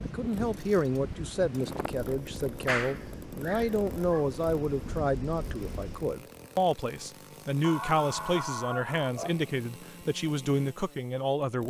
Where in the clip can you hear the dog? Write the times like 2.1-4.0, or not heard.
2.5-4.2, 7.6-9.5.